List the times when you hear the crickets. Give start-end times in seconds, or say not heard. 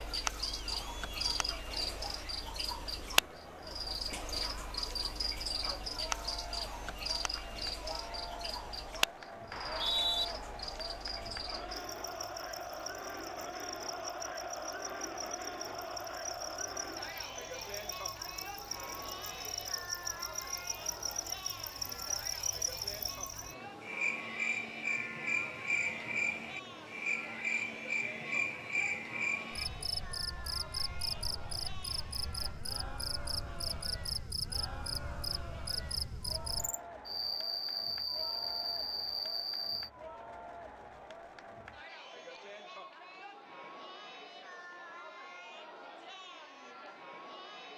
0.0-39.9.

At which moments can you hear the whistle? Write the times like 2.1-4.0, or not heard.
9.5-10.2.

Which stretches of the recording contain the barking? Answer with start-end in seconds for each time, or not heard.
not heard.